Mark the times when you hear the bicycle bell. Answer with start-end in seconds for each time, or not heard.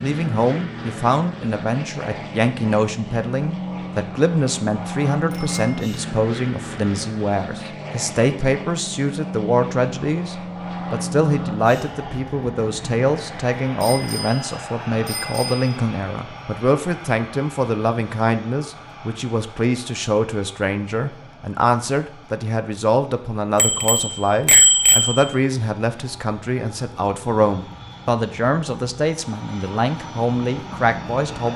5.3-5.7, 13.8-15.7, 23.6-25.4.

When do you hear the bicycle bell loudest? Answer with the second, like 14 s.
25 s.